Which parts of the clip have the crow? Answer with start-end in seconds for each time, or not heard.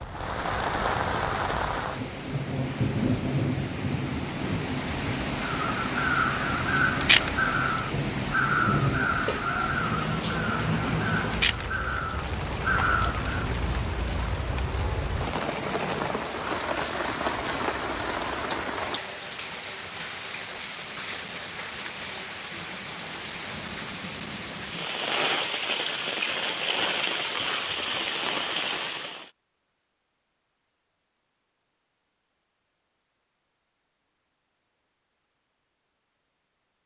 5.3-13.2.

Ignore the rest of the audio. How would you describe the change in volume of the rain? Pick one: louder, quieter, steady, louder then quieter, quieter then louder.
steady.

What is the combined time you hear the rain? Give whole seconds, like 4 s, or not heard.
29 s.